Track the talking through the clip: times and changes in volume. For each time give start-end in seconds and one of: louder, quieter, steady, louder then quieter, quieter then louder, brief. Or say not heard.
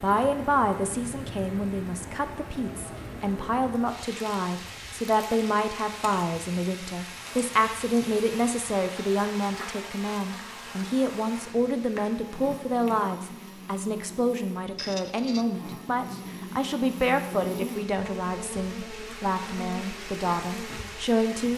0.0-21.5 steady.